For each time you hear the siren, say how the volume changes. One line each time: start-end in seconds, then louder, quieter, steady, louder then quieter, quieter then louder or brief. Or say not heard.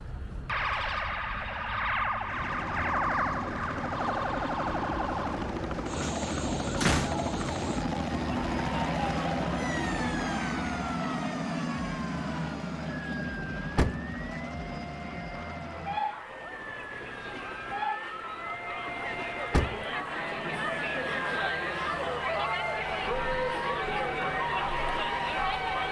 0.0-25.8 quieter then louder.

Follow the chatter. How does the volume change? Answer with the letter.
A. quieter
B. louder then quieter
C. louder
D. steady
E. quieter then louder
E.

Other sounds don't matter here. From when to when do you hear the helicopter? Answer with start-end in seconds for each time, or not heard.
2.2-25.8.